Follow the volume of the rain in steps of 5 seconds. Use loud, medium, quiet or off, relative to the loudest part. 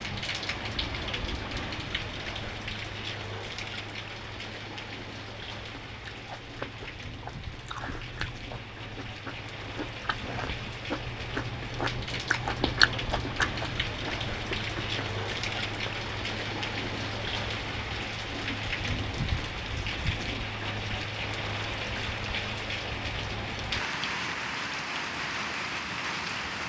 loud, medium, loud, loud, loud, loud.